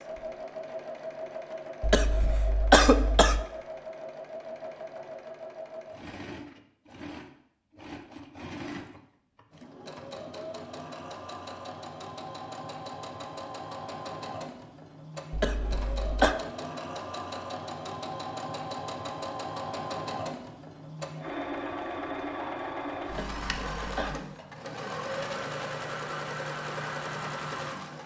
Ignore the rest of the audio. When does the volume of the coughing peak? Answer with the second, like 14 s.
3 s.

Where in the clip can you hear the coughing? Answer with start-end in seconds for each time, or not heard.
1.8-3.5, 15.3-16.4, 23.1-24.2.